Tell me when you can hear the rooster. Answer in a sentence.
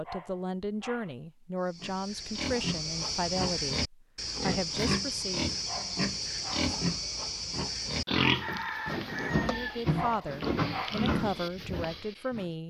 You can hear the rooster from 8.2 to 9.8 s.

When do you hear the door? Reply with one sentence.
You can't hear the door here.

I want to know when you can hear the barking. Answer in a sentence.
You can hear the barking from 0.0 to 1.1 s, from 5.7 to 6.8 s and from 9.9 to 11.1 s.